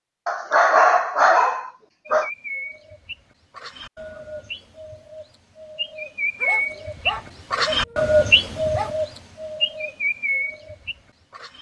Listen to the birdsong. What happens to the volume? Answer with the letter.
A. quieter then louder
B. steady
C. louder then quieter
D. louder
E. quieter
C.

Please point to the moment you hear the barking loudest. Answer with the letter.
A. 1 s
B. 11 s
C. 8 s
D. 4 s
A.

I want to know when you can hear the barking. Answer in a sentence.
The barking can be heard from 0.2 to 2.3 s and from 6.4 to 8.9 s.